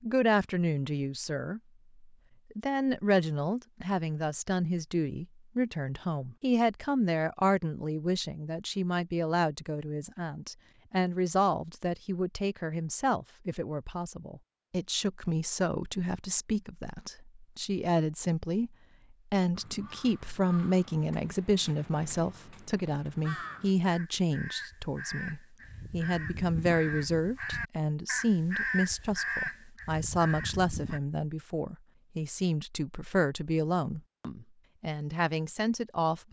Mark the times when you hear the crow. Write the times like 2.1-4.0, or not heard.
19.6-31.0.